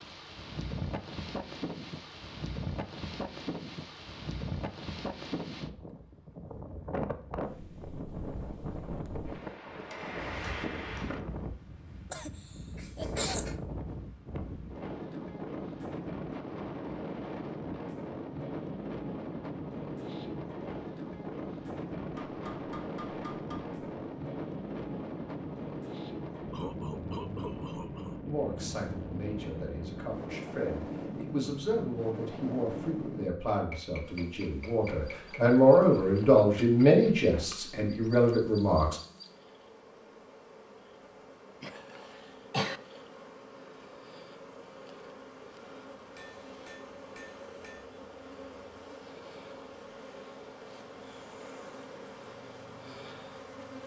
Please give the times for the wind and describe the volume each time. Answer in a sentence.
The wind can be heard from 0.0 to 33.3 s, at a steady volume.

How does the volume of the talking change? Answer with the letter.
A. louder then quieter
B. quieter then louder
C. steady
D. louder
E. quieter
D.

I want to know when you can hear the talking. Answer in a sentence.
You can hear the talking from 28.2 to 39.0 s.